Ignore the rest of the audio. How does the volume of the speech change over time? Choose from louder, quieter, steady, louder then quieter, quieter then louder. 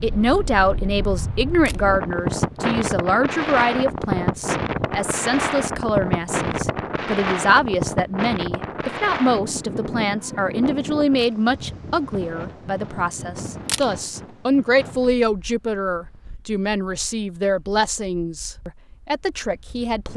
steady.